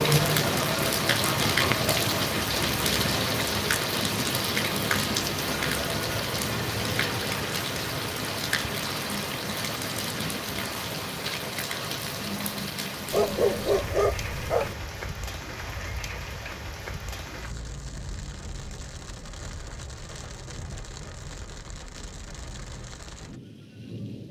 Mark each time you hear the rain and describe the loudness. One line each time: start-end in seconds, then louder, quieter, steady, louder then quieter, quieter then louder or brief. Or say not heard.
0.0-24.2 quieter.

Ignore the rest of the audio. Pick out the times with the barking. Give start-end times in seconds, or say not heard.
13.1-14.8.